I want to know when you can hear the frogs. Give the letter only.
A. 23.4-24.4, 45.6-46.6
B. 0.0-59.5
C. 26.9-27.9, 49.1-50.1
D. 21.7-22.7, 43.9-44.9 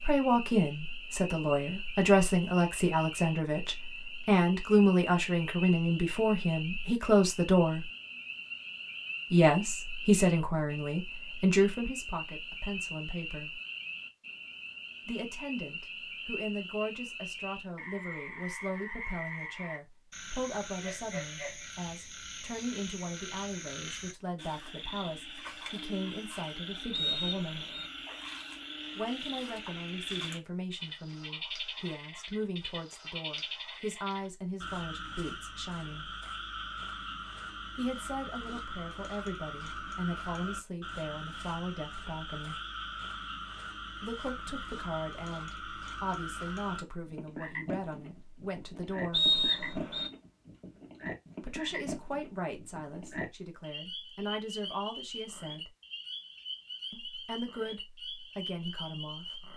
B.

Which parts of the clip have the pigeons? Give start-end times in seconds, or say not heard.
not heard.